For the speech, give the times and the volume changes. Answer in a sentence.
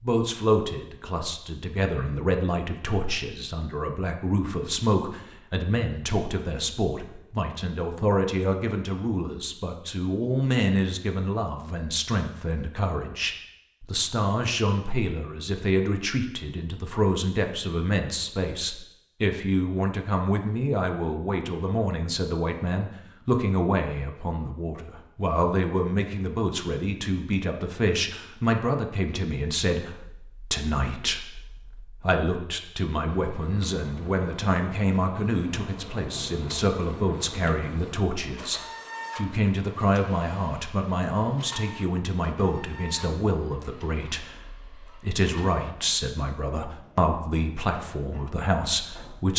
You can hear the speech from 0.0 to 49.3 s, at a steady volume.